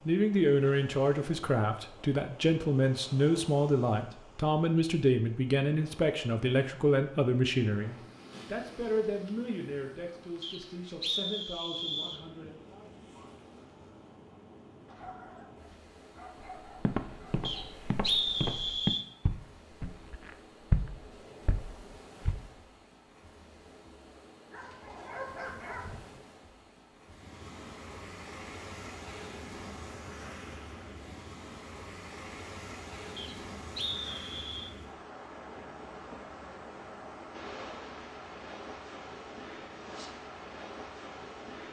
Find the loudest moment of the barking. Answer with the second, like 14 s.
25 s.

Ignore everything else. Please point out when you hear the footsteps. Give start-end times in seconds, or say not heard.
16.4-22.4.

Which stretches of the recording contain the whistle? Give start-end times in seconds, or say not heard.
10.4-12.2, 17.4-19.1, 33.1-34.7.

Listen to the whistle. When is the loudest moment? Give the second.
18 s.